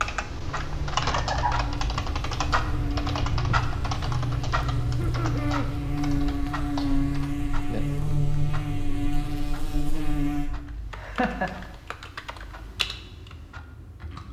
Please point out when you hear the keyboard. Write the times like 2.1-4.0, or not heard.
0.0-8.3, 10.7-14.2.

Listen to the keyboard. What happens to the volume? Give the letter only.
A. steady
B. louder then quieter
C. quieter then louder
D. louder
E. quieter
E.